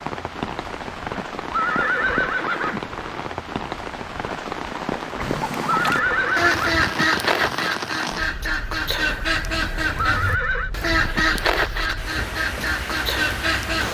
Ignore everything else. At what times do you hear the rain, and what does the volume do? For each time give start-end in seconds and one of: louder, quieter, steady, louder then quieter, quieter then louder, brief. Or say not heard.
0.0-13.9 quieter then louder.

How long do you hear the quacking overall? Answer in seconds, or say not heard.
9 s.